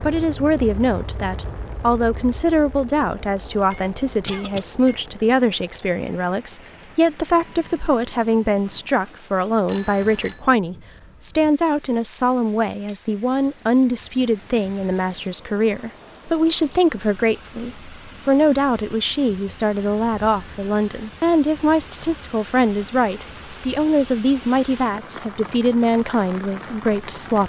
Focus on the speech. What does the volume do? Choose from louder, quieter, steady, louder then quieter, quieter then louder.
steady.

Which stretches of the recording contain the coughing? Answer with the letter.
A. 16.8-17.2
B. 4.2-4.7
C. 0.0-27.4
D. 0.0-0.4
B.